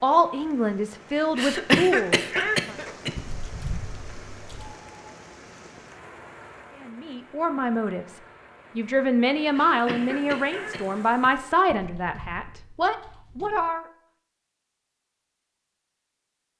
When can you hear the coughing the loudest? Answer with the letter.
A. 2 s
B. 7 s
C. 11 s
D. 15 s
A.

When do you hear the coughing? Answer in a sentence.
The coughing can be heard from 1.4 to 3.1 s and from 9.5 to 11.3 s.